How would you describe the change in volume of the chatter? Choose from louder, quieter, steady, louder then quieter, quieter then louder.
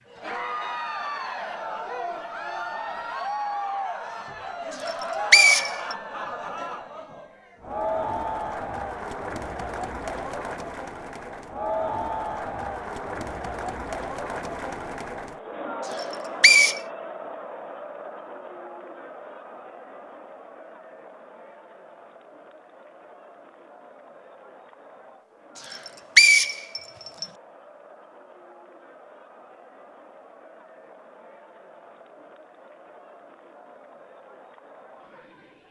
quieter.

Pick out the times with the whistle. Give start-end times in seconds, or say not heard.
4.8-6.0, 16.0-16.8, 25.7-27.2.